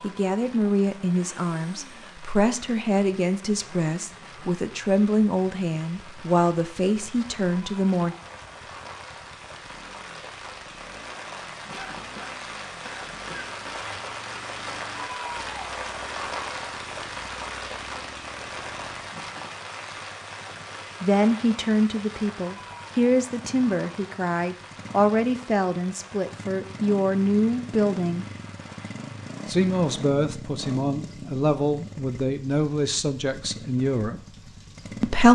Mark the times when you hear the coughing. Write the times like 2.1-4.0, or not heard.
11.7-13.5.